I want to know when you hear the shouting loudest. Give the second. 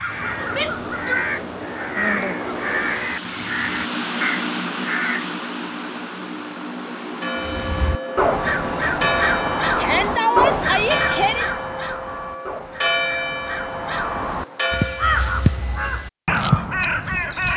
10 s.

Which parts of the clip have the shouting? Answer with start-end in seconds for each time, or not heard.
0.5-1.2, 9.8-11.4.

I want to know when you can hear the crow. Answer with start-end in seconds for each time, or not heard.
0.0-5.2, 7.5-17.5.